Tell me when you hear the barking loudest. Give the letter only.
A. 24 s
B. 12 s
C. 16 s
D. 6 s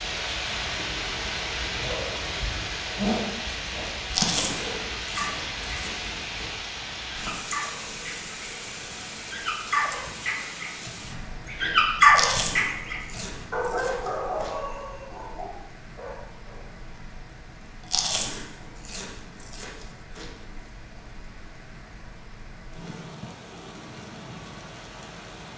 B.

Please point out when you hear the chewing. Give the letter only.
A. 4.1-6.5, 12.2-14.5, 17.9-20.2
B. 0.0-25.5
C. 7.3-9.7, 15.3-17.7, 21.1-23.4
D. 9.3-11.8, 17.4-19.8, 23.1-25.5
A.